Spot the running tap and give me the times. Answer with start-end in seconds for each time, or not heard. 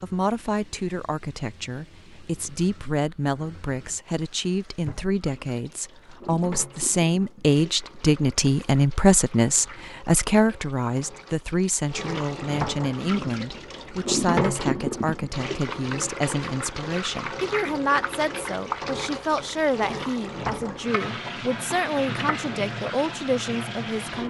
0.0-24.2.